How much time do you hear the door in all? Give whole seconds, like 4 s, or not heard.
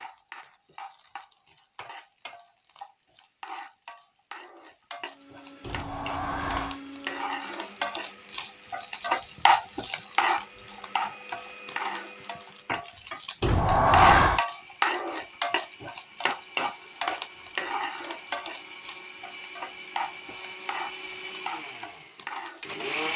2 s.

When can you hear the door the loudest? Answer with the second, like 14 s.
14 s.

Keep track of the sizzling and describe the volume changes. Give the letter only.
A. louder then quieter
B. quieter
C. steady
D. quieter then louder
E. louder
A.